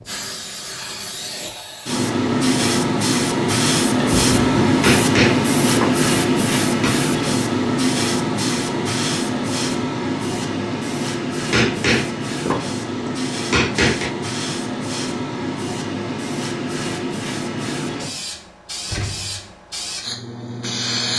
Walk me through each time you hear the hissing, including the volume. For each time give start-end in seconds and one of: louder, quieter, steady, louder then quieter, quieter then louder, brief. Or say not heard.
0.0-21.1 quieter.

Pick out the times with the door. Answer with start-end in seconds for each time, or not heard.
4.0-4.8, 18.9-19.4.